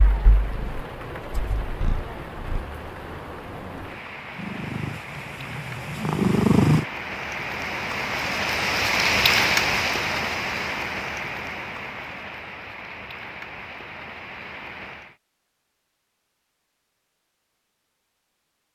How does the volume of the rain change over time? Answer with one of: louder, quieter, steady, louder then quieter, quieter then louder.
louder then quieter.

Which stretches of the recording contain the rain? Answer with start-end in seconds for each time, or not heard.
0.0-15.2.